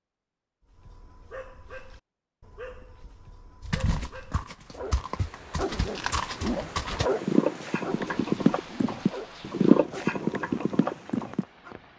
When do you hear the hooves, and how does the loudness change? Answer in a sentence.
The hooves can be heard from 3.6 to 11.4 s, getting louder.